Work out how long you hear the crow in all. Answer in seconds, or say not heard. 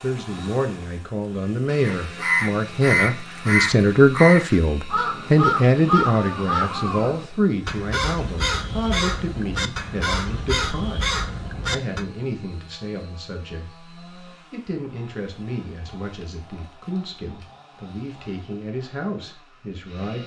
10 s.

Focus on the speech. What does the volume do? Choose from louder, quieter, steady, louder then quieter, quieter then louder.
quieter.